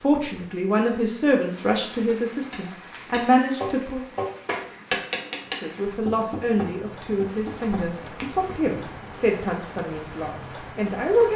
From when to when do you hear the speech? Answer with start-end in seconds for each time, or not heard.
0.0-4.0, 5.6-11.3.